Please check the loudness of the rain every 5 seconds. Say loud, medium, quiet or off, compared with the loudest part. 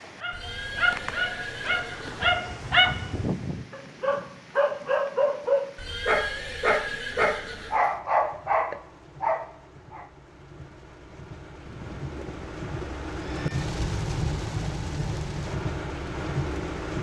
quiet, quiet, loud, loud.